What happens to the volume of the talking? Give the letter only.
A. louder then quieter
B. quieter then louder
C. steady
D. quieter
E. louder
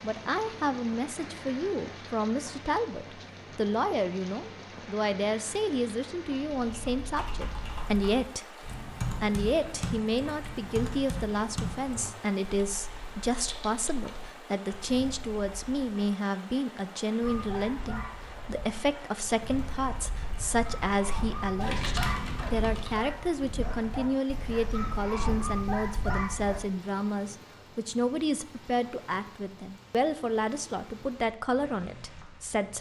C.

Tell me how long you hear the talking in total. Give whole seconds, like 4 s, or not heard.
32 s.